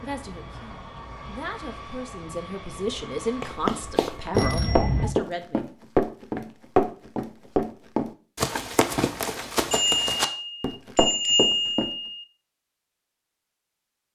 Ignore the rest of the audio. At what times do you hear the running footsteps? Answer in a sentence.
The running footsteps can be heard from 3.4 to 11.9 s.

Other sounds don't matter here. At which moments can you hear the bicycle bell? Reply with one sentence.
The bicycle bell can be heard from 4.3 to 5.2 s and from 9.7 to 12.2 s.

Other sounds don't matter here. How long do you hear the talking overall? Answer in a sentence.
The talking can be heard for 6 seconds in total.